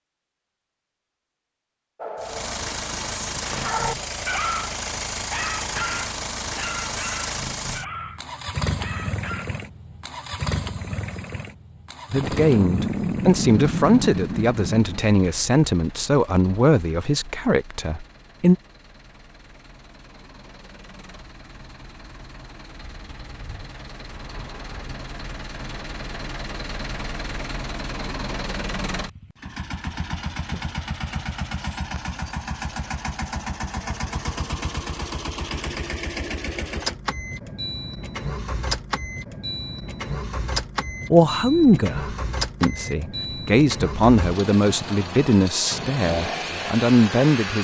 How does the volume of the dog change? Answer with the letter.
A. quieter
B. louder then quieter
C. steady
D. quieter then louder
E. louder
B.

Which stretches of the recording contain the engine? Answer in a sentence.
You can hear the engine from 2.2 to 47.5 s.